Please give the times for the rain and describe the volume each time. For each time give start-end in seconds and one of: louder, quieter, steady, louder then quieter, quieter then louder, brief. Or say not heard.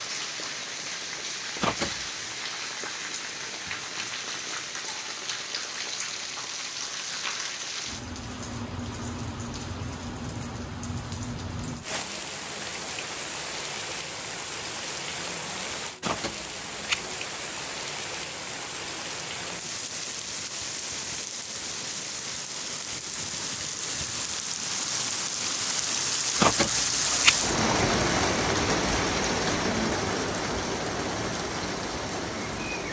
0.0-32.8 louder.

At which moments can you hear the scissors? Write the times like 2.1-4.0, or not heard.
1.6-2.0, 16.0-17.0, 26.4-27.4.